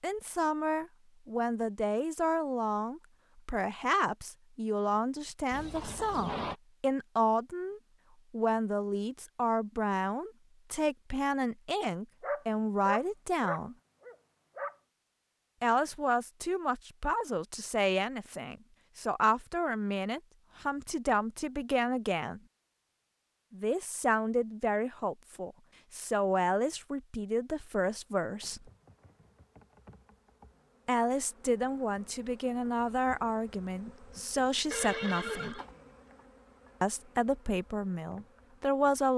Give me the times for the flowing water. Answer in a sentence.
You can't hear the flowing water here.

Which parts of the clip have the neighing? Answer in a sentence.
The neighing can be heard from 5.5 to 6.5 s and from 34.7 to 35.7 s.